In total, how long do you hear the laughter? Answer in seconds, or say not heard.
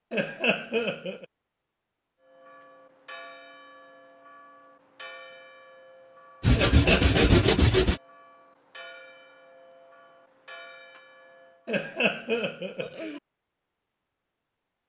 3 s.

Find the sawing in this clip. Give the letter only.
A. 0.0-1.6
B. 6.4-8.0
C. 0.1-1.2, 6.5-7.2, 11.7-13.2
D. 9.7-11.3
B.